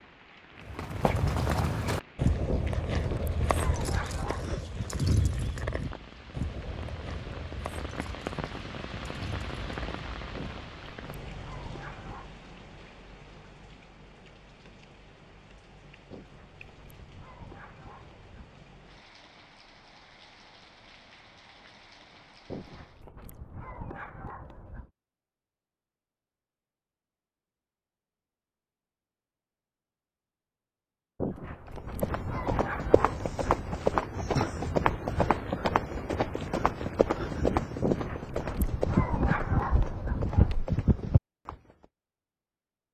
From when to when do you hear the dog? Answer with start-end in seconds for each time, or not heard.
2.5-4.6, 10.3-12.3, 16.1-18.5, 22.4-24.9, 31.1-33.9, 37.8-40.6.